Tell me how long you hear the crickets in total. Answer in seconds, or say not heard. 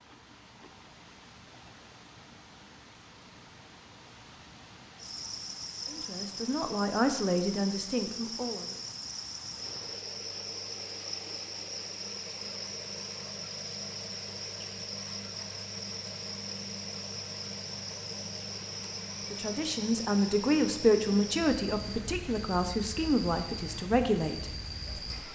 20 s.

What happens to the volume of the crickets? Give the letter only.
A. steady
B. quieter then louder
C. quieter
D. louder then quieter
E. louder
A.